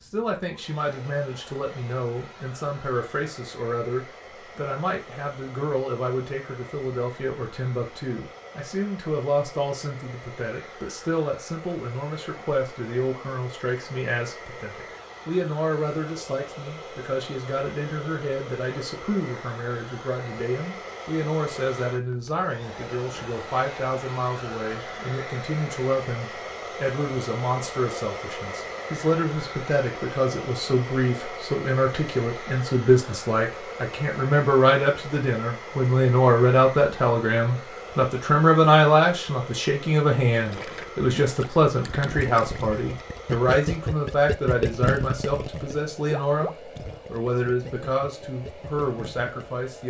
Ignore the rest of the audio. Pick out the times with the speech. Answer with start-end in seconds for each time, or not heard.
0.0-49.8.